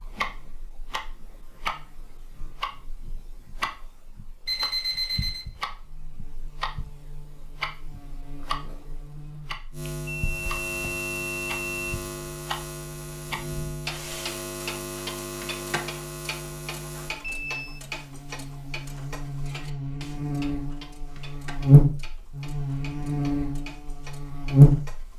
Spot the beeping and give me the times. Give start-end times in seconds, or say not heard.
4.5-5.5, 10.1-11.7, 17.2-17.8.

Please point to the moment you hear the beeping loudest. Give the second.
5 s.